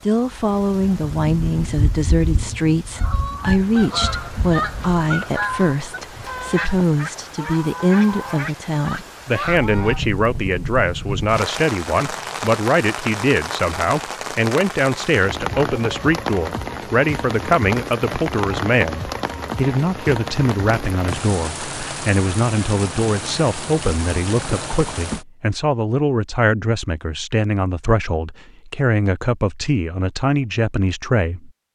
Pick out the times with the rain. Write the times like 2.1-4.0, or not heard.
0.0-25.2.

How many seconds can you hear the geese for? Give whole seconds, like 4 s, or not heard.
7 s.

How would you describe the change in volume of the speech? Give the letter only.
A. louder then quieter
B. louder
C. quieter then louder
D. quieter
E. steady
E.